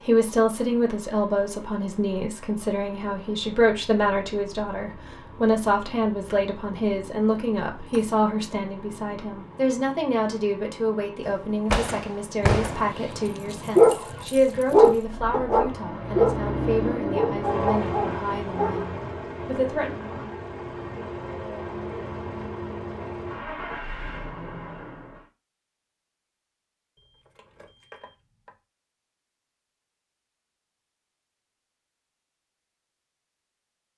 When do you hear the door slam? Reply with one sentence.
You can hear the door slam from 11.2 to 12.9 s.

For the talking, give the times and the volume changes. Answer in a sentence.
You can hear the talking from 0.1 to 19.9 s, getting quieter.